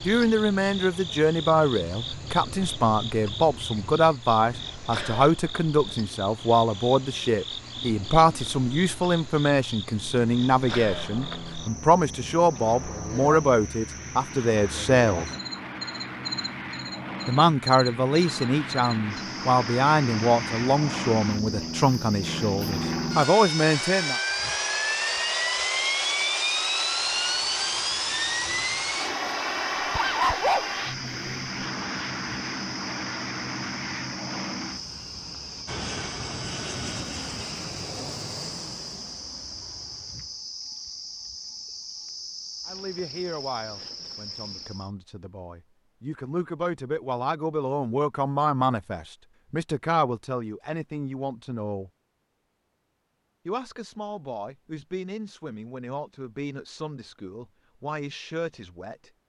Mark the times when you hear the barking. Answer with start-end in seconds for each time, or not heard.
29.8-31.4.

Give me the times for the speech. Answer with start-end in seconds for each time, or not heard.
0.0-15.3, 17.2-24.2, 42.6-51.9, 53.5-59.1.